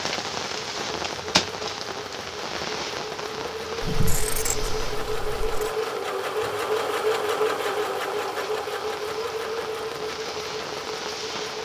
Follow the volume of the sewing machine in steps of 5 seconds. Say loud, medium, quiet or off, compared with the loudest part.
medium, loud, medium.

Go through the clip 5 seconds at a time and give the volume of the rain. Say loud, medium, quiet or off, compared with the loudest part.
loud, medium, loud.